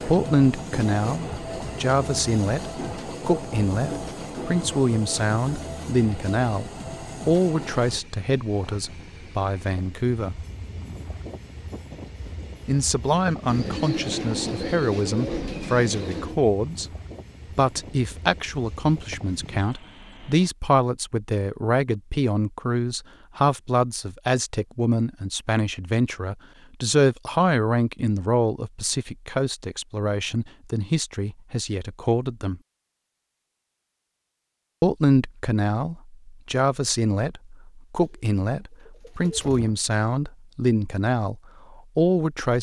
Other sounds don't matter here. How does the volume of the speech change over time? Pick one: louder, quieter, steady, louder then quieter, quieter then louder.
steady.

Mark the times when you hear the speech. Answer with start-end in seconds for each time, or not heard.
0.0-10.4, 12.7-16.9, 17.6-32.6, 34.8-42.5.